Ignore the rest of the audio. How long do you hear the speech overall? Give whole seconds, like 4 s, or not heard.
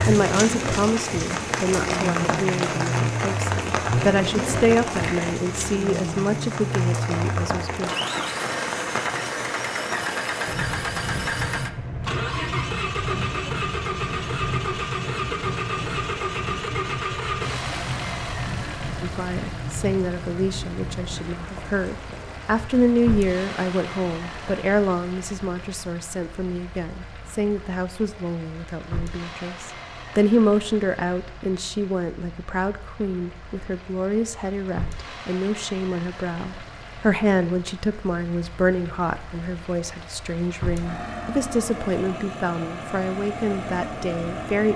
34 s.